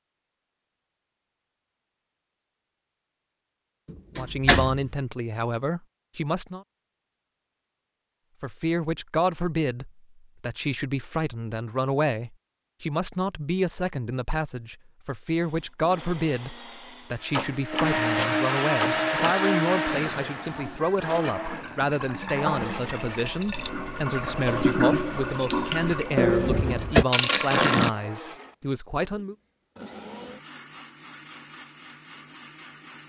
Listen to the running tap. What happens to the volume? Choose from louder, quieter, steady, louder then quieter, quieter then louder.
louder.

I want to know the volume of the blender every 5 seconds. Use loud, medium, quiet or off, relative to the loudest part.
off, off, off, loud, medium, quiet, quiet.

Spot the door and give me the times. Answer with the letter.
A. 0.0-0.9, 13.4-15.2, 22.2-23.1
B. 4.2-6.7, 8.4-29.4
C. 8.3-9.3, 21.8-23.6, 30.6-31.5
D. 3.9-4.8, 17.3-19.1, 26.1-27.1
D.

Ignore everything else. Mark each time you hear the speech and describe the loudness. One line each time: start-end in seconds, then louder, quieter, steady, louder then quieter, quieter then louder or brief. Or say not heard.
4.2-6.7 brief
8.4-29.4 steady.